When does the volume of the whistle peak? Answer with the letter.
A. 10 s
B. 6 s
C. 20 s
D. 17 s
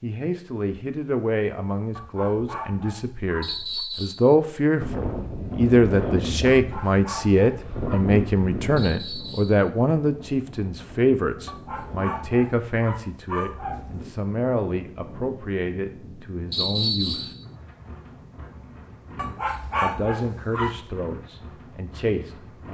D.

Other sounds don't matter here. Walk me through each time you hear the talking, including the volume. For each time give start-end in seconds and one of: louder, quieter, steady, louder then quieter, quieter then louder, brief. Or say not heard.
0.0-17.4 louder then quieter
19.8-22.6 brief.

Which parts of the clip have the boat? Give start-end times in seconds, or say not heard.
not heard.